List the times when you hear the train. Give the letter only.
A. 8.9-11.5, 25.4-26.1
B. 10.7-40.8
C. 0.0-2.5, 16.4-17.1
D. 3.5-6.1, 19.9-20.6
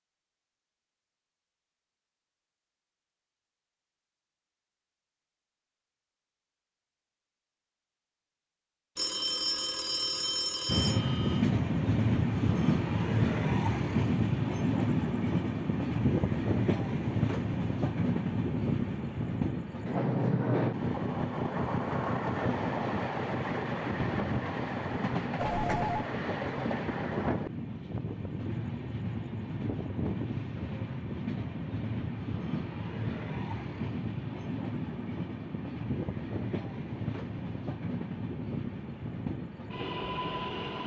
B.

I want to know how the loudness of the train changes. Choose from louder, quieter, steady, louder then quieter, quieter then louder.
quieter.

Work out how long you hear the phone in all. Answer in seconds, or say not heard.
3 s.